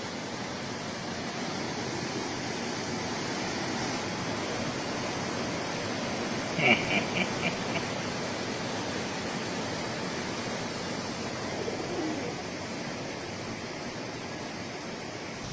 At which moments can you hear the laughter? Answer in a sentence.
The laughter can be heard from 6.5 to 7.8 s.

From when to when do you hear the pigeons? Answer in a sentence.
The pigeons can be heard from 11.3 to 12.4 s.